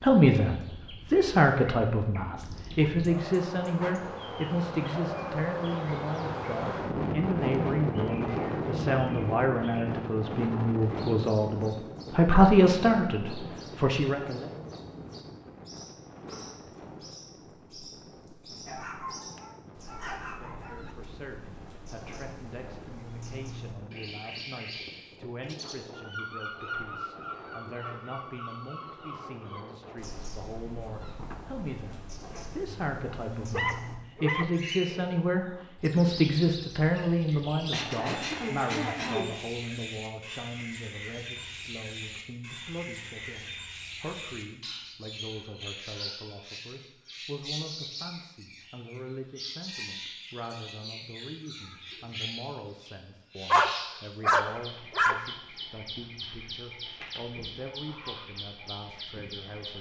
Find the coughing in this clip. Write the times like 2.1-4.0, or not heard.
37.5-39.4.